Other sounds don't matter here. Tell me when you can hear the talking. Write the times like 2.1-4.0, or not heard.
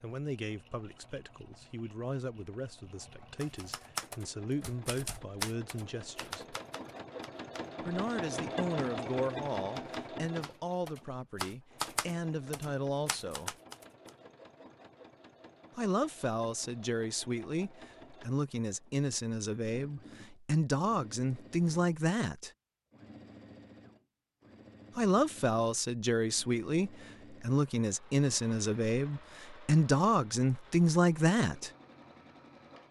0.0-6.5, 7.8-13.6, 15.8-22.5, 24.9-31.7.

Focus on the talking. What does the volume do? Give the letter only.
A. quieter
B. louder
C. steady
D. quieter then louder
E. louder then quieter
B.